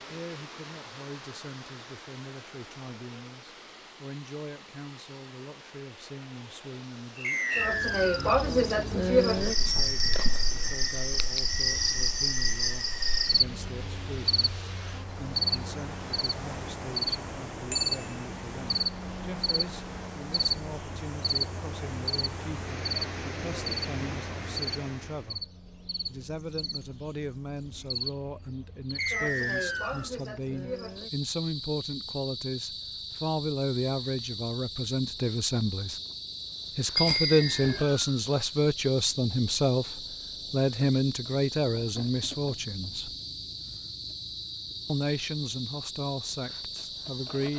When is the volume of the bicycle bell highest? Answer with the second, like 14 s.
37 s.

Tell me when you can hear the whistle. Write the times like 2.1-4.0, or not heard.
7.2-8.3, 28.9-30.1, 37.1-38.2.